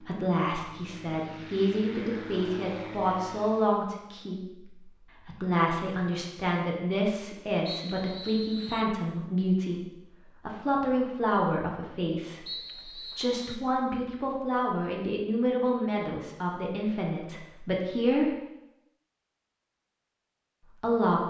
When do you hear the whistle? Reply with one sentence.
The whistle can be heard from 7.7 to 8.9 s and from 12.4 to 13.6 s.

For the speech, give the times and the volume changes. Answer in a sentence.
You can hear the speech from 0.0 to 18.4 s, at a steady volume; and briefly from 20.8 to 21.2 s.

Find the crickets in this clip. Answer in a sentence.
You can't hear the crickets here.